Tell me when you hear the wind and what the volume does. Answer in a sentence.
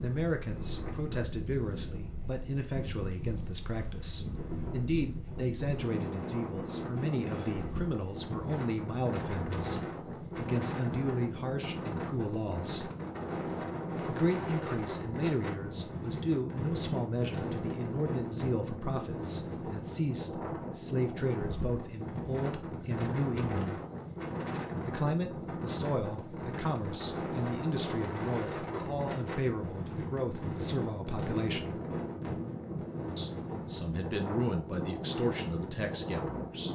You can hear the wind from 0.0 to 36.7 s, at a steady volume.